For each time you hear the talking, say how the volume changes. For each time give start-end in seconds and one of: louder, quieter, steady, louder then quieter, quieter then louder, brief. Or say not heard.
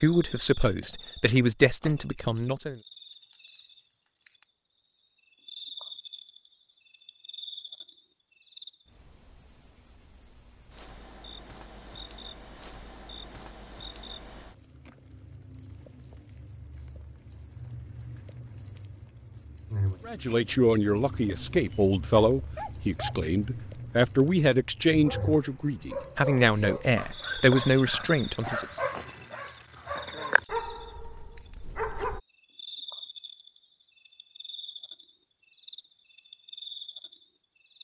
0.0-2.8 brief
20.1-28.8 steady.